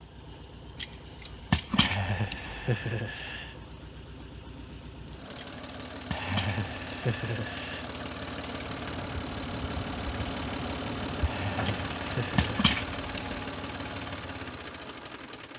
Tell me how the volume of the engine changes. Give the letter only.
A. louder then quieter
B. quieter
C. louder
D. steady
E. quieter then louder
C.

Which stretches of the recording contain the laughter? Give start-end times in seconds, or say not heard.
1.8-3.6, 6.1-7.8, 11.2-12.8.